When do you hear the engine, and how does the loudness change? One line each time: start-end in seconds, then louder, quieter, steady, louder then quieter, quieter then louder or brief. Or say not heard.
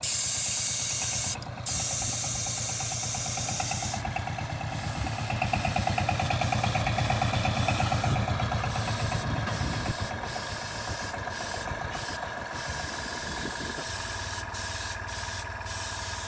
0.0-16.2 louder then quieter.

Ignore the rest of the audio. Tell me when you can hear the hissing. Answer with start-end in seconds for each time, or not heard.
0.0-16.2.